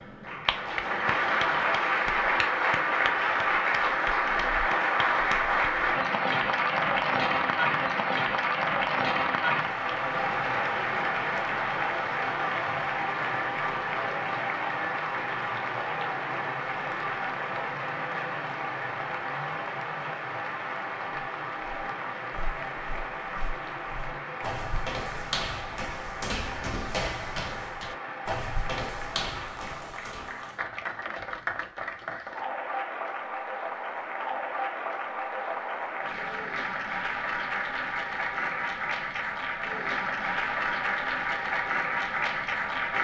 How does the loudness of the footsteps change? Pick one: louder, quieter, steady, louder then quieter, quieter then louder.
louder.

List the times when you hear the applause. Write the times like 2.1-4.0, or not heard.
0.0-42.9.